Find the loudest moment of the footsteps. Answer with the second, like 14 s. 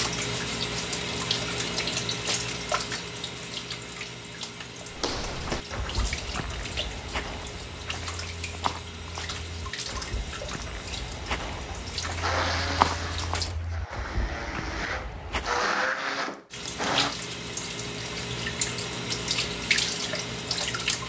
13 s.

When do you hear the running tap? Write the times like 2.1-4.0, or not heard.
0.0-13.6, 16.5-21.0.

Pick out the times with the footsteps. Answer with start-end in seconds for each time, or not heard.
4.9-15.7.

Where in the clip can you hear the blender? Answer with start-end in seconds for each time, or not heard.
12.2-17.1.